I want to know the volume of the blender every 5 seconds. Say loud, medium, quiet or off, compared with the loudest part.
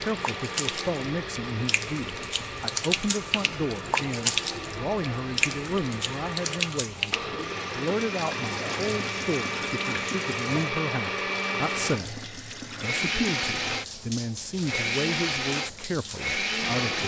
medium, medium, loud, loud.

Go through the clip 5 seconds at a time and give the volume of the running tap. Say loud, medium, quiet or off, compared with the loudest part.
loud, loud, medium, medium.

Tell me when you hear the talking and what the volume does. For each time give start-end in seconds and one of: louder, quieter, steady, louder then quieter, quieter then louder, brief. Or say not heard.
0.0-17.0 steady.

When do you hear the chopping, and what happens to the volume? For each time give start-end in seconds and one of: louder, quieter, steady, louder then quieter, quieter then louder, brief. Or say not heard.
not heard.